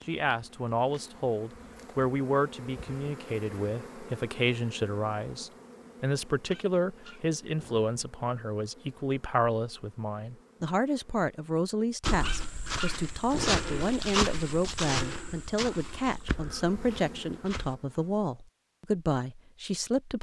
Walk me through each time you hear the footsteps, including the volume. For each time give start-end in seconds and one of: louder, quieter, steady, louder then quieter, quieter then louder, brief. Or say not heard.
12.0-17.8 louder then quieter.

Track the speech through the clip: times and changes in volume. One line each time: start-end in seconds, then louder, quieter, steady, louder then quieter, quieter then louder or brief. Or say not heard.
0.1-20.1 steady.